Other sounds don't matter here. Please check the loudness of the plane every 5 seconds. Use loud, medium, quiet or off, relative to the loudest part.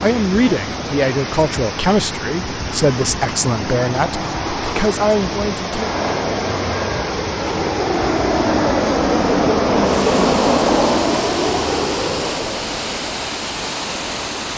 medium, loud, loud.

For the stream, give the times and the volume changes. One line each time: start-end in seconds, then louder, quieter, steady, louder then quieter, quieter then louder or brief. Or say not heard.
0.0-14.5 steady.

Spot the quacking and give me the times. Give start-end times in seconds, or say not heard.
not heard.